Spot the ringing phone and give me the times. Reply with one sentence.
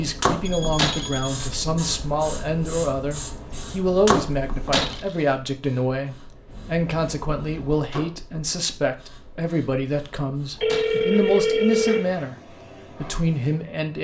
You can hear the ringing phone from 0.5 to 1.4 s, from 6.5 to 7.8 s and from 10.6 to 12.1 s.